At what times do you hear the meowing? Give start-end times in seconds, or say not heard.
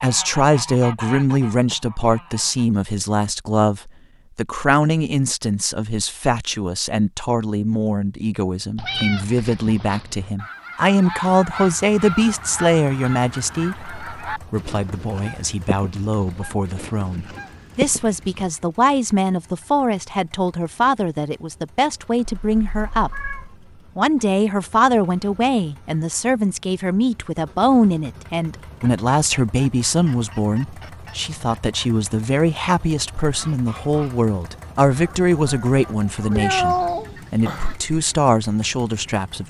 8.8-10.3, 22.2-23.5, 36.3-37.8.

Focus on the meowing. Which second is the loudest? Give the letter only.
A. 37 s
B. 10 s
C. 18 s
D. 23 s
A.